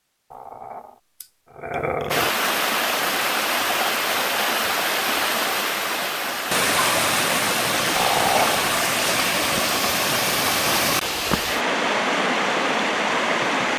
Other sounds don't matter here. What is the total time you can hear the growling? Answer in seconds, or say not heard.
3 s.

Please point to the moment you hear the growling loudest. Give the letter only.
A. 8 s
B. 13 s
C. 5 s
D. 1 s
A.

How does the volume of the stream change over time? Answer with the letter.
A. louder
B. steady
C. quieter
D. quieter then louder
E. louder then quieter
B.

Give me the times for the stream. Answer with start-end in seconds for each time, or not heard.
2.1-13.7.